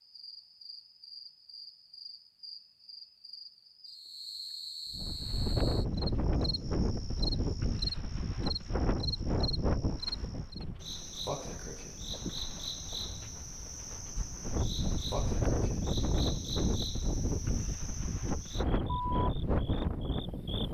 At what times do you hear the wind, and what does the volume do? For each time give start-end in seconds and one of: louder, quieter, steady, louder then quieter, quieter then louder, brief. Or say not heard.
4.9-20.6 quieter then louder.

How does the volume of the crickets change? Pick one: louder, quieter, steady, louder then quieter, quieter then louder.
louder.